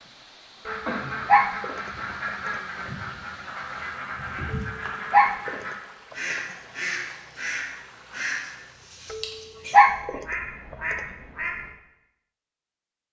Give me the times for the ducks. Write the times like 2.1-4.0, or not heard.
0.7-11.7.